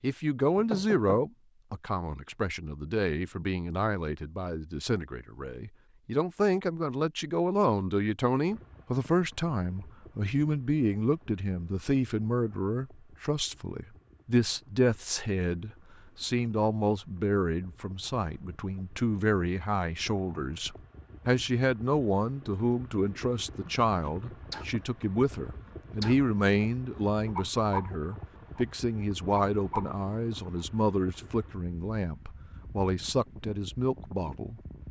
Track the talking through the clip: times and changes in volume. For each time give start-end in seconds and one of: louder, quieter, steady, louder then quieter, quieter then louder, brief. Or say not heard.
0.0-34.6 steady.